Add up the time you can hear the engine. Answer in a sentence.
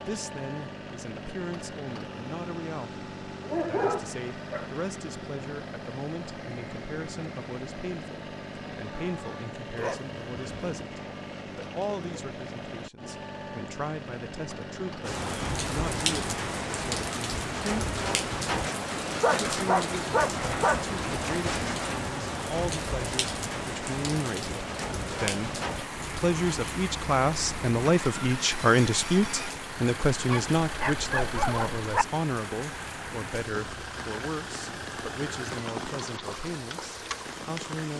You can hear the engine for 38 seconds altogether.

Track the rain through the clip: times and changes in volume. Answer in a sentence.
The rain can be heard from 15.0 to 37.9 s, getting quieter.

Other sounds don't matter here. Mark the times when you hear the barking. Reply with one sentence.
You can hear the barking from 3.5 to 4.7 s, from 9.8 to 10.7 s, from 19.2 to 20.8 s and from 30.3 to 32.0 s.